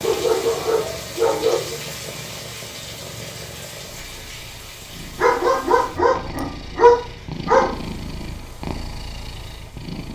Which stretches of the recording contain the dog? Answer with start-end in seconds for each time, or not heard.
0.0-1.8, 5.2-7.8.